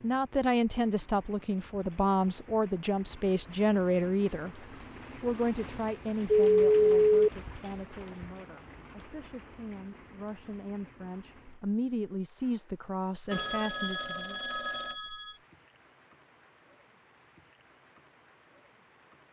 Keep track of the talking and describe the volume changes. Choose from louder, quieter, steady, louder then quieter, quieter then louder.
quieter then louder.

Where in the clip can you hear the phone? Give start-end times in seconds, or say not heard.
6.3-7.3, 13.3-15.3.